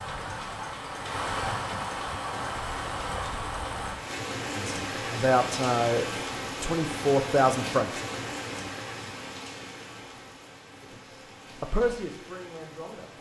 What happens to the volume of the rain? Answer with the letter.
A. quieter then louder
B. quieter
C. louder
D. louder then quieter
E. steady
B.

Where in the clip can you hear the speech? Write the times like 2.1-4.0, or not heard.
4.5-8.0, 10.8-13.1.